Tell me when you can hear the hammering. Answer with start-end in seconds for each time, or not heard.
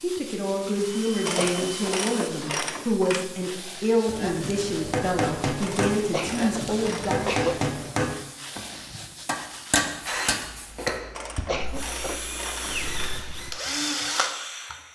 4.0-10.9.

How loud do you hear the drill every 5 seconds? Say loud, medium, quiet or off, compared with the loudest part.
medium, off, loud.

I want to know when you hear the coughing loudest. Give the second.
7 s.